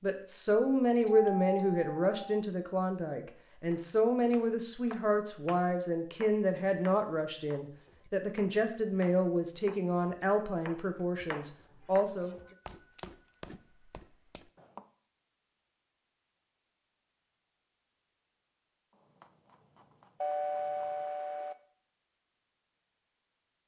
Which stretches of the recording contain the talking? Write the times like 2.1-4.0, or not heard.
0.0-12.3.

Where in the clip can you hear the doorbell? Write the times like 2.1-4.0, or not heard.
1.0-2.4, 12.2-14.0, 20.2-21.6.